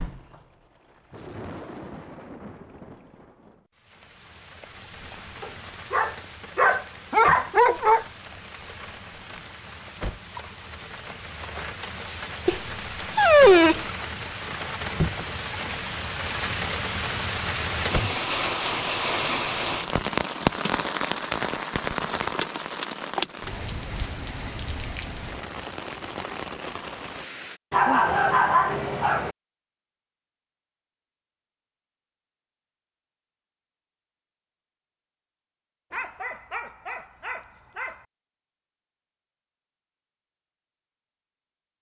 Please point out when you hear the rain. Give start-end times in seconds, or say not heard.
0.0-27.6.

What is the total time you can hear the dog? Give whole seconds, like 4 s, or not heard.
8 s.